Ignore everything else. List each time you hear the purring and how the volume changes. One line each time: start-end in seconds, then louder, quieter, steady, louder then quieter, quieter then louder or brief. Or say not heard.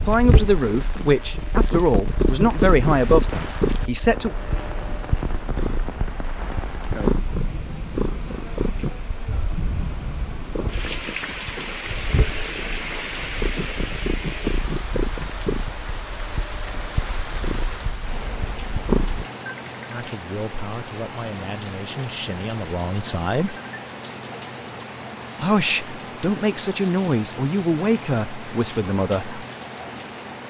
0.0-19.2 quieter.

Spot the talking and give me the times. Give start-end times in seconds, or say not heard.
0.0-4.3, 19.9-23.6, 25.4-29.4.